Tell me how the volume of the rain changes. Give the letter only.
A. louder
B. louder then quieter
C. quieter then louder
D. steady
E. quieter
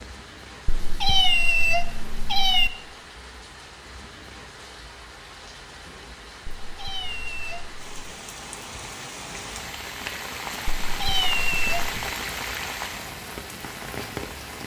A.